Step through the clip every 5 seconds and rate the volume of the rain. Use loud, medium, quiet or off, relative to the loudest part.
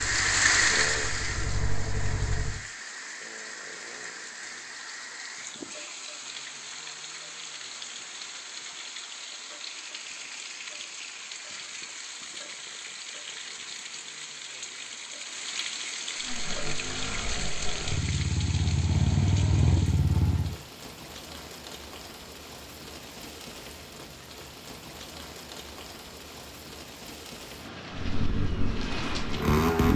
loud, medium, medium, medium, quiet, medium.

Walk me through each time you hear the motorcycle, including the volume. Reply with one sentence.
You can hear the motorcycle briefly from 0.0 to 2.6 s; from 16.2 to 20.6 s, getting louder; and briefly from 27.9 to 29.9 s.